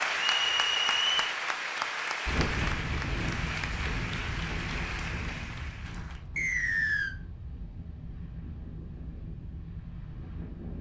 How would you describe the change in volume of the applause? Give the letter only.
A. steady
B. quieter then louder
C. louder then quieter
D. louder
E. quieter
E.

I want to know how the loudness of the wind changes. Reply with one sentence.
The volume of the wind goes down.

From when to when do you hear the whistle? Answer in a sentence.
You can hear the whistle from 0.1 to 1.3 s and from 6.3 to 7.2 s.